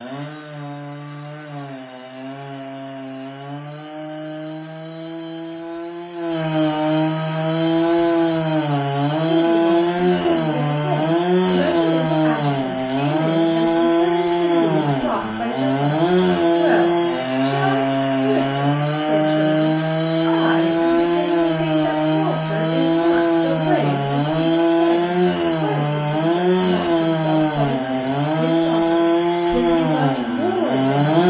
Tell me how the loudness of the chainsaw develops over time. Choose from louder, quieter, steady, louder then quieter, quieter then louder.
louder.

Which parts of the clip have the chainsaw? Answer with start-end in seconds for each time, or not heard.
0.0-31.2.